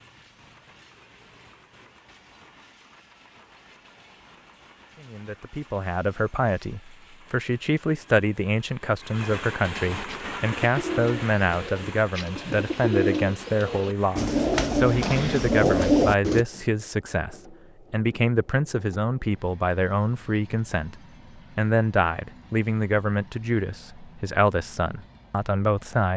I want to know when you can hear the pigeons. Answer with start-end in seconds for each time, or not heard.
10.1-16.4.